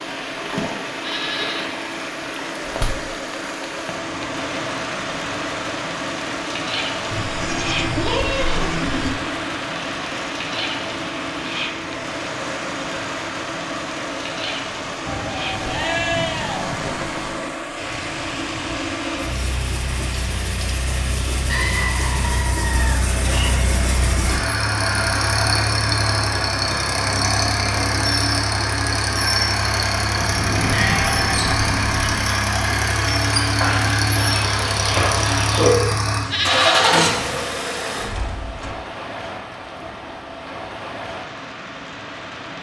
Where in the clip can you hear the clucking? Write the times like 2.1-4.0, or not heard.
33.4-35.7.